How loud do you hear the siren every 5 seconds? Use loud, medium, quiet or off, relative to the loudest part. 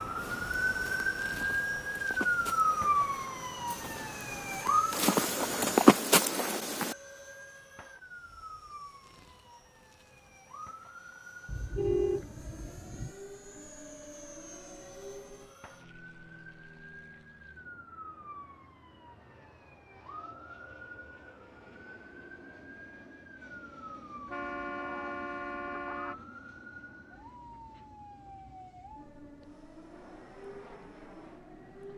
loud, quiet, quiet, quiet, quiet, quiet, quiet.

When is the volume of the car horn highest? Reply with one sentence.
The volume of the car horn peaks at 12 seconds.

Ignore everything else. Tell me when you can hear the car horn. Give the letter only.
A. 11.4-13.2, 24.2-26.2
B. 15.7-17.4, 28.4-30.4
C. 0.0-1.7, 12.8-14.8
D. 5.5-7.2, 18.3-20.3
A.